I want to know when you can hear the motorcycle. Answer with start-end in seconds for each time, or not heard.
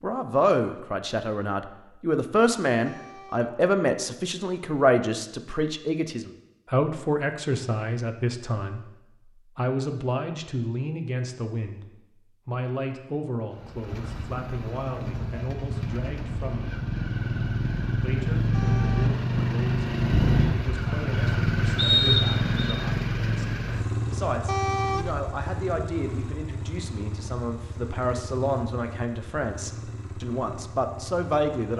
13.5-31.7.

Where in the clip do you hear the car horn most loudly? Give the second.
25 s.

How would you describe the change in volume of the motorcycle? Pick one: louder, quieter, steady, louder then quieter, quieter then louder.
louder then quieter.